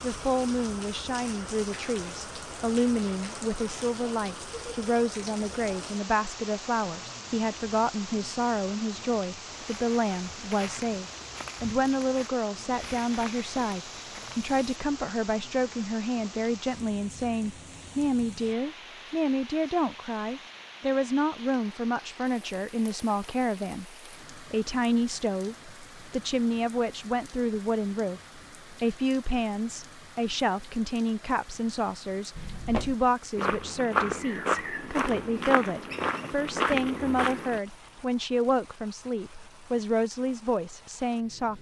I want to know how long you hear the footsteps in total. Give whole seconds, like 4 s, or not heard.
10 s.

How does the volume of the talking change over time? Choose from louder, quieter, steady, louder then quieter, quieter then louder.
steady.